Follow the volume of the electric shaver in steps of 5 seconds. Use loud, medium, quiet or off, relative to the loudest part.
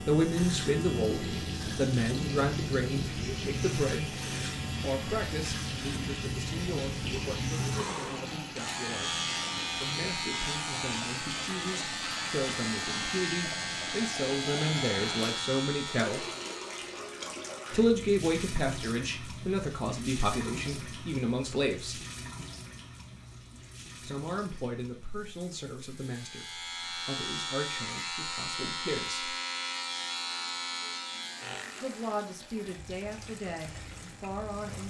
loud, loud, loud, loud, off, loud, medium.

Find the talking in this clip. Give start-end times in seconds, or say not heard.
0.1-4.2, 4.8-16.2, 17.7-22.0, 24.0-29.4, 31.8-34.8.